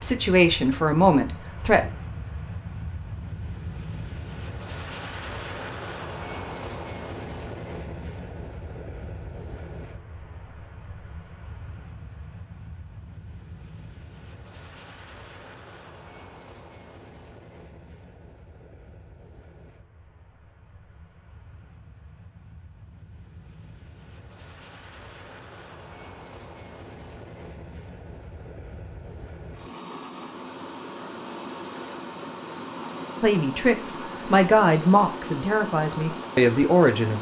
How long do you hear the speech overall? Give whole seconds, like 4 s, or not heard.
6 s.